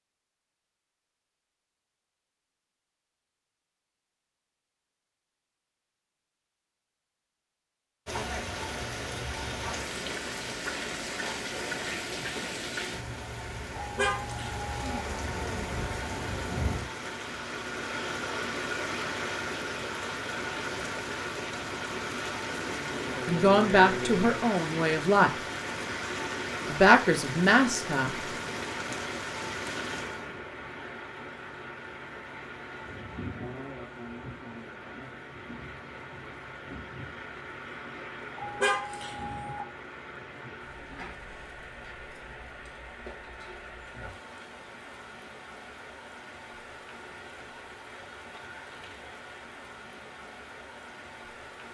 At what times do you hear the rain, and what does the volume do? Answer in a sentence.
The rain can be heard from 8.1 to 51.6 s, getting quieter.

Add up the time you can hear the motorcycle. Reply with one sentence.
The motorcycle can't be heard in this clip.